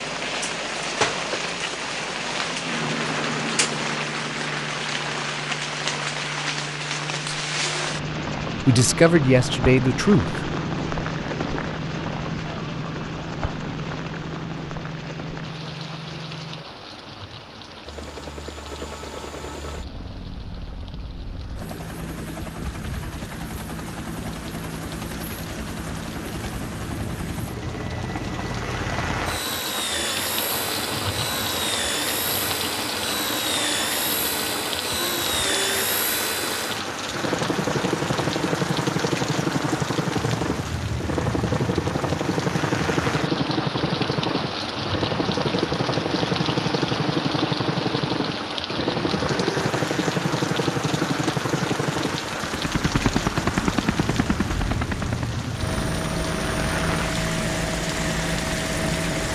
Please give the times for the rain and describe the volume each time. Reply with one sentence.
The rain can be heard from 0.0 to 59.3 s, getting quieter then louder.